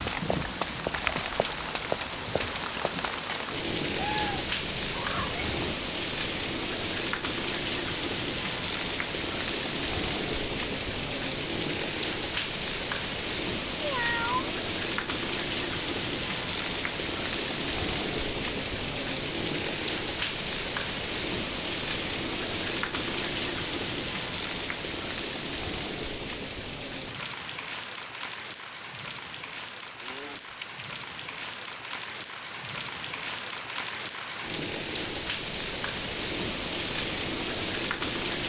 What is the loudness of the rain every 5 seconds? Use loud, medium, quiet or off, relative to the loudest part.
loud, loud, loud, loud, loud, medium, medium, loud.